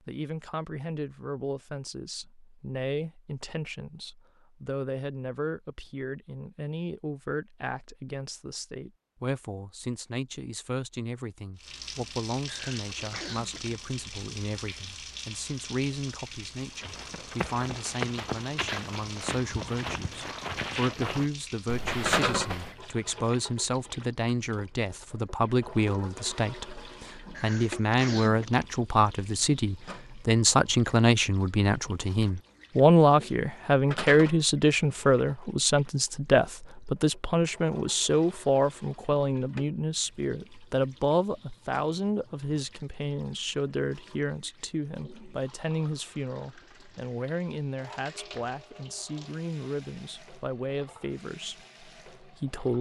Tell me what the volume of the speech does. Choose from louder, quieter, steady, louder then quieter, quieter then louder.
louder then quieter.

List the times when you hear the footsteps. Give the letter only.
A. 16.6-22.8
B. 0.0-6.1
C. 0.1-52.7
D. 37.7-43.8
A.